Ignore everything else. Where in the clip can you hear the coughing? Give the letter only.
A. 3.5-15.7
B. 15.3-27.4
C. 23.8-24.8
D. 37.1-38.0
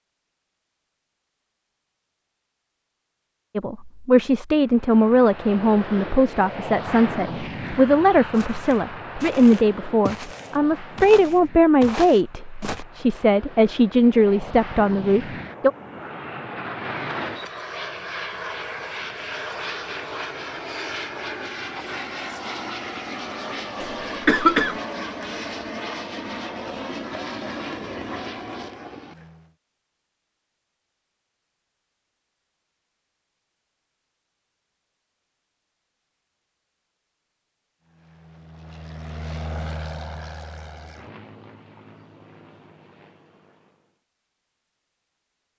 C.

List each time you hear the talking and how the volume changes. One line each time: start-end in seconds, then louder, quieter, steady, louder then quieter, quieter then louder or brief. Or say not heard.
3.5-15.7 steady.